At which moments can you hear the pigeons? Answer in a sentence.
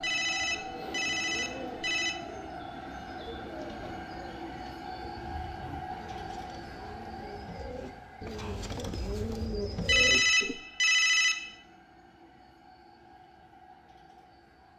You can hear the pigeons from 0.4 to 10.6 s.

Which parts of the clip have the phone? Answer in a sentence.
The phone can be heard from 0.0 to 2.1 s and from 9.8 to 11.6 s.